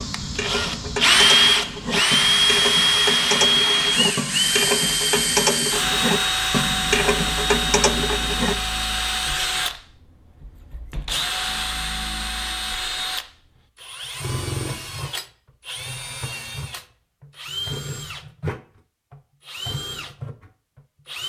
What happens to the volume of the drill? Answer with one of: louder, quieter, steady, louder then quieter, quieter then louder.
quieter.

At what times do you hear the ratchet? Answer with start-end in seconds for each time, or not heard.
0.0-8.6.